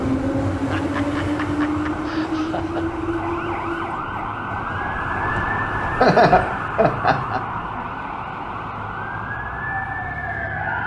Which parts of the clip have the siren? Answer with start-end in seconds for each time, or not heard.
0.0-10.8.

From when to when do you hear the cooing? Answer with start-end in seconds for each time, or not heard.
not heard.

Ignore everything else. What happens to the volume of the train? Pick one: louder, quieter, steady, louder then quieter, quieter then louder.
quieter.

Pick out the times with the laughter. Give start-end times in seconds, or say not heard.
0.6-2.9, 6.0-7.5.